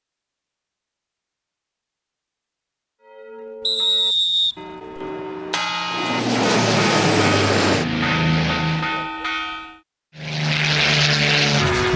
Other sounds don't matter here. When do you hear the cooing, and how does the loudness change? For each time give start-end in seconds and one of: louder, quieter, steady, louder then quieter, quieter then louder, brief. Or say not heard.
not heard.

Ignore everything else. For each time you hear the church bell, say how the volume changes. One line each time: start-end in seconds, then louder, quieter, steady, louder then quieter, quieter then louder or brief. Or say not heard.
3.0-9.8 louder.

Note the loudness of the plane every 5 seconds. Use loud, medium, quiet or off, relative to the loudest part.
off, loud, loud.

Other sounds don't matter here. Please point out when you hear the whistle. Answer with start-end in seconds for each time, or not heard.
3.6-5.0.